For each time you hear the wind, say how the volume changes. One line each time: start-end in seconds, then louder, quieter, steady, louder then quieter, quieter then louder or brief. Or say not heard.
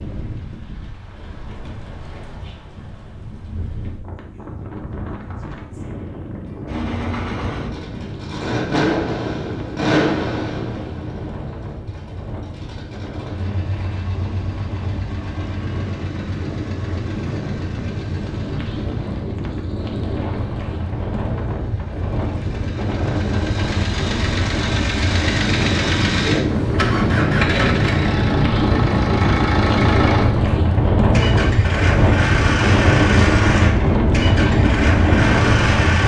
0.0-36.0 louder.